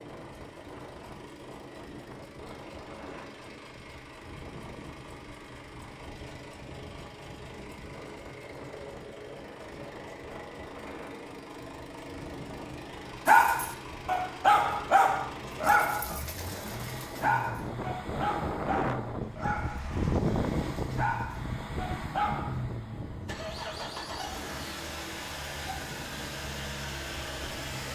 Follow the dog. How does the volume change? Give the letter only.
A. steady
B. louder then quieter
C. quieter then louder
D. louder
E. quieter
E.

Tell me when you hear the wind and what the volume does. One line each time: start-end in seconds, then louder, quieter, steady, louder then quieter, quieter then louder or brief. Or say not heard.
0.0-27.6 louder then quieter.